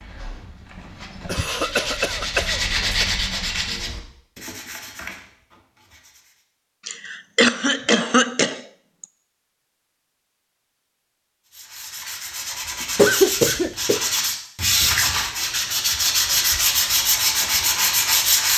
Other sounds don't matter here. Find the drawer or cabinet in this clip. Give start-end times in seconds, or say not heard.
not heard.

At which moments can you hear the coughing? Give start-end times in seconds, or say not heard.
1.2-3.0, 6.8-9.1, 12.9-14.1.